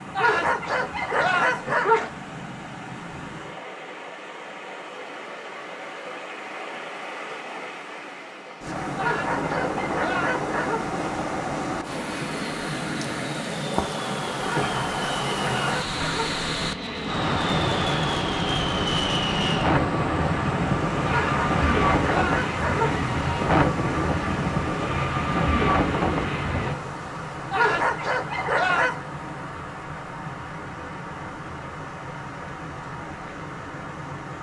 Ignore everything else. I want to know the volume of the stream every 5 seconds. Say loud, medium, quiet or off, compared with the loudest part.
medium, medium, loud, loud, loud, medium, medium.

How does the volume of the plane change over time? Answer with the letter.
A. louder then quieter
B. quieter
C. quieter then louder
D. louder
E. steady
D.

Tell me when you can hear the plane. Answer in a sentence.
You can hear the plane from 9.3 to 26.8 s.